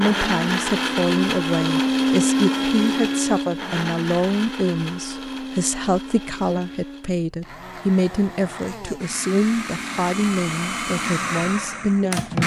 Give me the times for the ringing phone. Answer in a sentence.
The ringing phone can't be heard in this clip.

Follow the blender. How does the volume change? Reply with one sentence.
The volume of the blender goes down, then up.